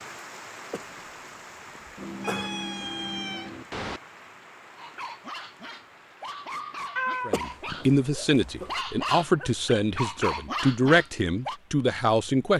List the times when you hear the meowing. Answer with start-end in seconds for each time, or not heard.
1.9-4.0, 7.0-7.8.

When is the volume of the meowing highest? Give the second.
7 s.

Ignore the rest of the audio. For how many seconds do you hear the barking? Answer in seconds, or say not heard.
7 s.